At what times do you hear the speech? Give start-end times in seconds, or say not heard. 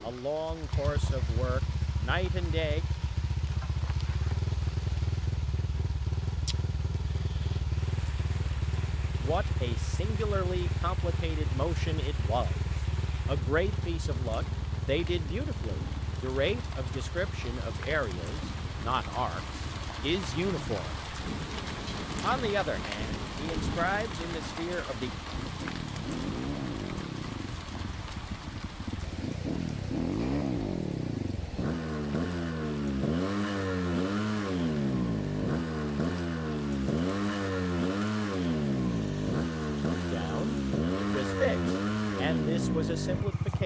0.0-2.9, 9.2-21.0, 22.2-25.1, 40.1-43.6.